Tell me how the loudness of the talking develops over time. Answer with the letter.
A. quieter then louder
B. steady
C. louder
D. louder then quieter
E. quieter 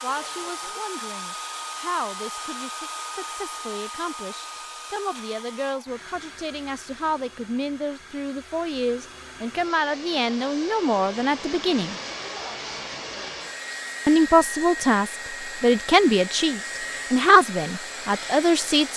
C.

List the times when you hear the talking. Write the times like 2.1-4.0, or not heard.
0.0-11.9, 14.1-18.9.